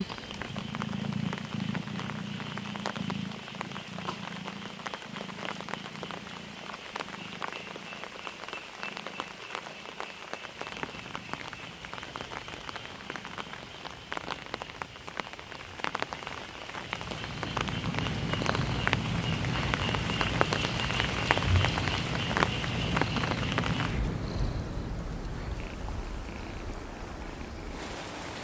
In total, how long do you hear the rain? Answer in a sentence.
The rain can be heard for 28 seconds in total.